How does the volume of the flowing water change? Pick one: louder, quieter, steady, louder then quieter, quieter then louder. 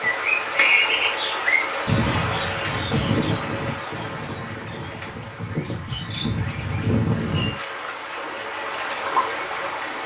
quieter then louder.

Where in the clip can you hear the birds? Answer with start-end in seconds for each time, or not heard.
0.1-7.5.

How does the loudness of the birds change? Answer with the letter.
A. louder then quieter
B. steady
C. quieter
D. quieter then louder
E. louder
D.